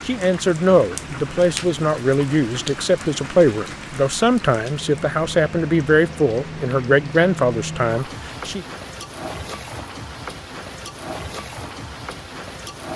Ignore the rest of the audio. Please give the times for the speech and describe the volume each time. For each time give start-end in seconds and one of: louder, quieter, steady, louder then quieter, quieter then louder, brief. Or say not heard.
0.1-8.7 steady.